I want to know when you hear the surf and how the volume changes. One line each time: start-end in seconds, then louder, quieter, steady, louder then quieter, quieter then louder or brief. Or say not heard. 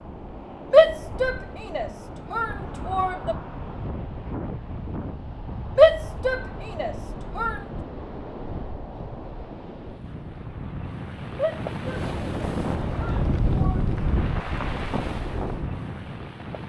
0.0-16.6 louder.